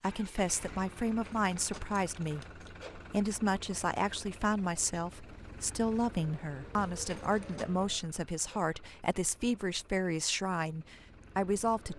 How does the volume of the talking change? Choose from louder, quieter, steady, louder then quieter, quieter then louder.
steady.